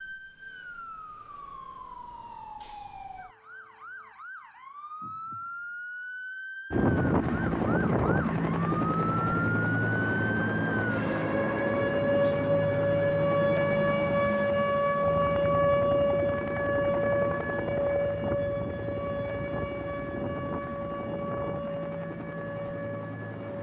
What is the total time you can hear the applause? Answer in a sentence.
The applause can't be heard in this clip.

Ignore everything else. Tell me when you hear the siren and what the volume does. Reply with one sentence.
The siren can be heard from 0.0 to 23.5 s, getting louder then quieter.